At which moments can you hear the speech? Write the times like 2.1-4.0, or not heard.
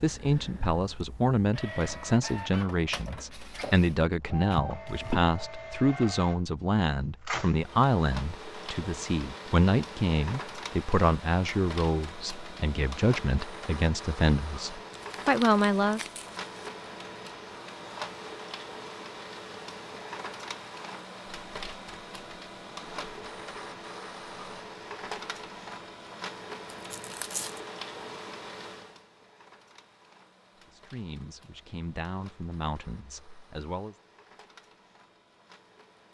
0.0-16.0, 30.7-34.0.